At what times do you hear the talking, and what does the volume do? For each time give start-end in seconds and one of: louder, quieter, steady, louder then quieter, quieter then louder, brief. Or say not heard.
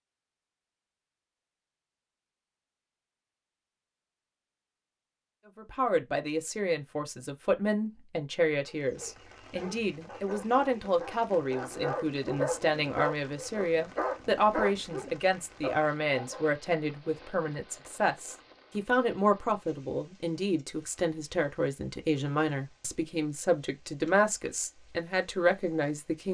5.5-26.3 steady.